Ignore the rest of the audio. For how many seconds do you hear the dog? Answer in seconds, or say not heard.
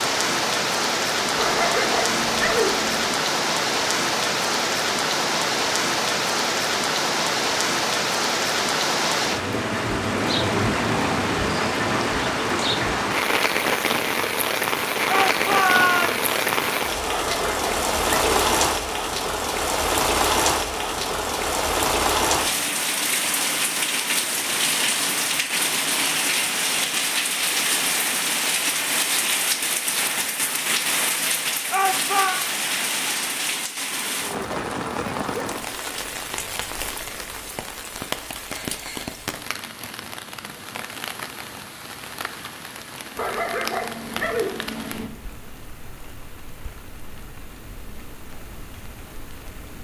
5 s.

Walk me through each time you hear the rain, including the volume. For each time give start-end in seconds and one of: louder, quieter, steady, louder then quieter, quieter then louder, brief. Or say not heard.
0.0-49.8 quieter.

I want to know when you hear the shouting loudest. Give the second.
16 s.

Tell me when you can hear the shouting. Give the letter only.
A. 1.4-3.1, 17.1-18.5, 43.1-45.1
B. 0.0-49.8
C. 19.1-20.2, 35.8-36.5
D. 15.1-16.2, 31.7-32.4
D.